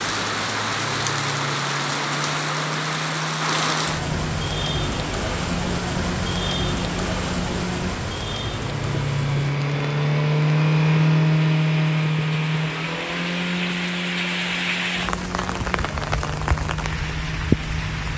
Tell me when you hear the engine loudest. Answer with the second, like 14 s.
11 s.